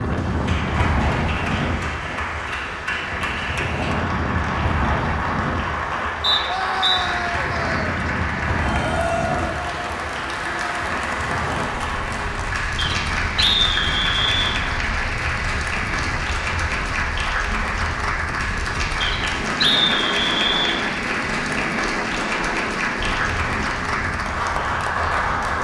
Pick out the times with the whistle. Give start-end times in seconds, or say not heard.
6.2-7.0, 12.8-14.6, 19.0-20.8.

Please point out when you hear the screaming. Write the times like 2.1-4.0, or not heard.
6.5-8.0.